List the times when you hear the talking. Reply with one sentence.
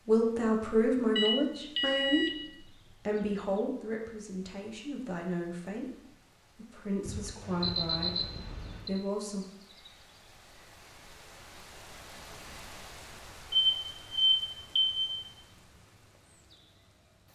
The talking can be heard from 0.1 to 9.4 s.